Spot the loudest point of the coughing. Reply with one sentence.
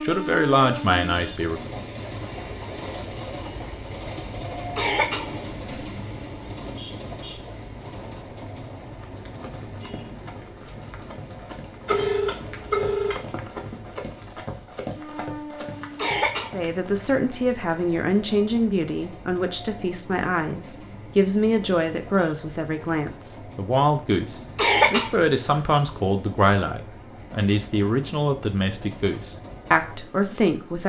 The loudest moment of the coughing is at 25 seconds.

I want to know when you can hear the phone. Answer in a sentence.
The phone can be heard from 11.8 to 13.2 s.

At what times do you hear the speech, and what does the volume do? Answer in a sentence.
The speech can be heard briefly from 0.0 to 1.8 s; and from 16.5 to 30.8 s, at a steady volume.